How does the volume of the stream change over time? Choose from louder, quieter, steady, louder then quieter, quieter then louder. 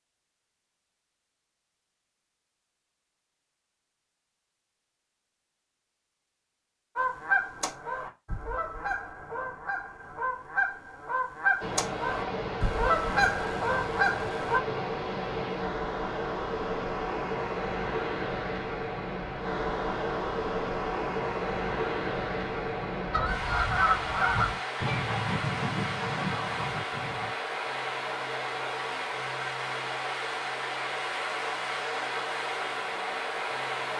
steady.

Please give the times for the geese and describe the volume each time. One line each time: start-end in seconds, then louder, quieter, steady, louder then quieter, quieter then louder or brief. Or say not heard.
7.0-14.6 louder
23.1-27.3 quieter.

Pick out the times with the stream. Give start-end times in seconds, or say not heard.
11.6-33.9.